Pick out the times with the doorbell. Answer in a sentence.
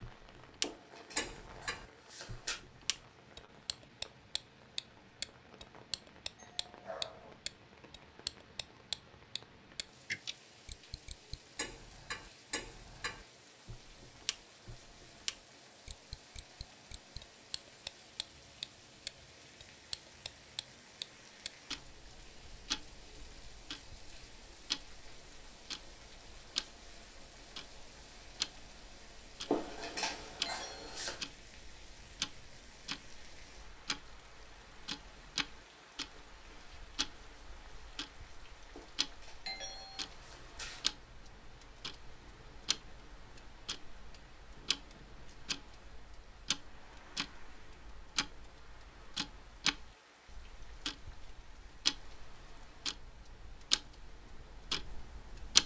The doorbell can be heard from 6.3 to 7.3 s, from 30.4 to 31.0 s and from 39.5 to 40.0 s.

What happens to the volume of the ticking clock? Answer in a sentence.
The loudness of the ticking clock goes down, then up.